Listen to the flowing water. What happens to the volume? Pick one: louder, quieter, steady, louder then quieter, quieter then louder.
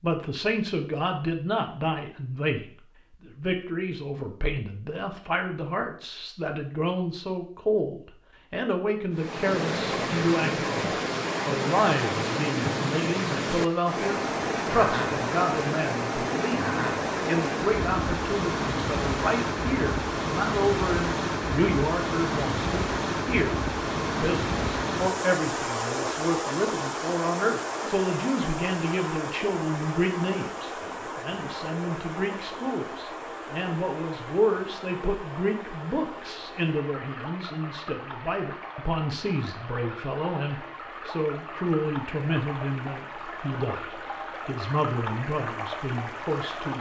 quieter.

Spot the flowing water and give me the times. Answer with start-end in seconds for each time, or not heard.
9.1-46.7.